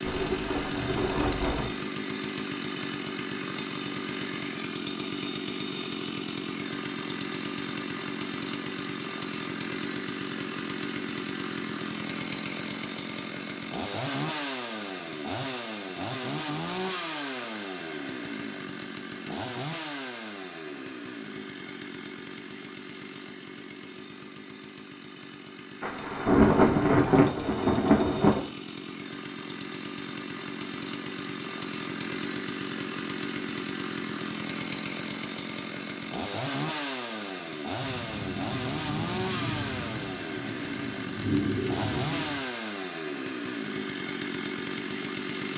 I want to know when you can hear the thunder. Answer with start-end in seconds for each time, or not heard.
0.0-1.7, 25.8-28.4, 37.8-42.5.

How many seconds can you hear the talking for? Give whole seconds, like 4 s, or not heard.
not heard.